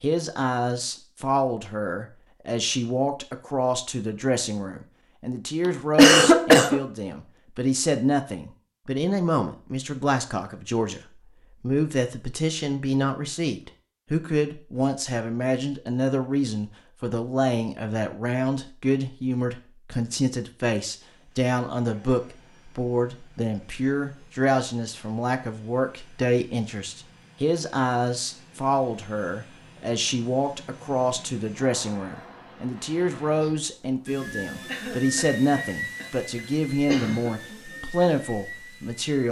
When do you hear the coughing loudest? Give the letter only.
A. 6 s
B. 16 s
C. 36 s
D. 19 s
A.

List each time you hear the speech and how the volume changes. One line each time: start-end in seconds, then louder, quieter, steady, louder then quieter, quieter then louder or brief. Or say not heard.
0.0-39.2 steady.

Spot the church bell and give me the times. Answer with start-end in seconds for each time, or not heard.
not heard.